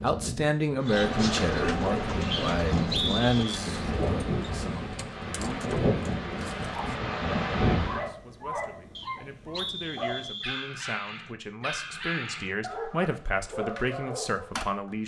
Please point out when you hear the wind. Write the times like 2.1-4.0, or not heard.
0.0-8.1.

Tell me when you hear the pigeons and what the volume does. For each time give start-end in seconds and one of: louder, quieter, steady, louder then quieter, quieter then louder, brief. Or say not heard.
0.8-6.7 quieter.